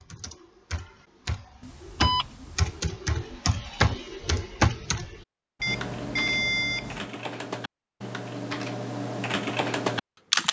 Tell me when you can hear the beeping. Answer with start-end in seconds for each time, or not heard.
1.6-2.8, 5.6-7.1.